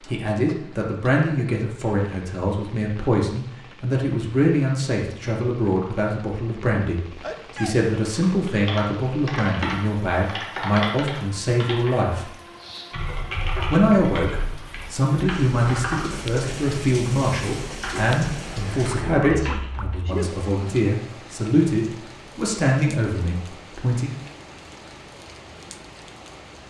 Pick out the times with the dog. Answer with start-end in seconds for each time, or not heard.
not heard.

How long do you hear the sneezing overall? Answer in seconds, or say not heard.
2 s.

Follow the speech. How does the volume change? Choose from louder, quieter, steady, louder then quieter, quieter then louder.
steady.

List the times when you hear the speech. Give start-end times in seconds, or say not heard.
0.0-12.3, 13.7-24.1.